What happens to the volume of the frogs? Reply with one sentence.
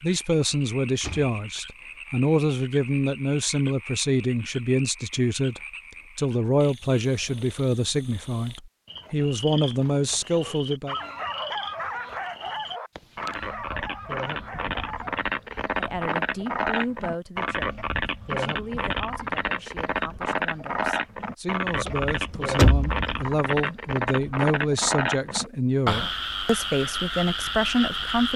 The loudness of the frogs goes up.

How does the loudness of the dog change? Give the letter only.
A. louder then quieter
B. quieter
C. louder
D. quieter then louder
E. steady
B.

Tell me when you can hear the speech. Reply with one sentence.
The speech can be heard from 0.0 to 10.9 s and from 15.8 to 28.3 s.